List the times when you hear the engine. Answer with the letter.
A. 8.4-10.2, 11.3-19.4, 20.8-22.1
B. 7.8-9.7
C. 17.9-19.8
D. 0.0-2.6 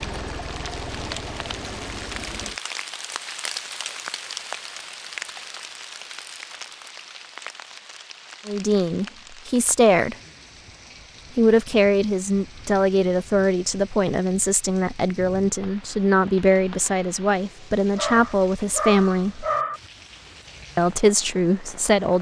D.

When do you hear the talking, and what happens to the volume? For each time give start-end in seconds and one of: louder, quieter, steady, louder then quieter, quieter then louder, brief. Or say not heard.
8.4-10.2 brief
11.3-19.4 steady
20.8-22.1 brief.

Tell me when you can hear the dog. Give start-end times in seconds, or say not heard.
17.9-19.8.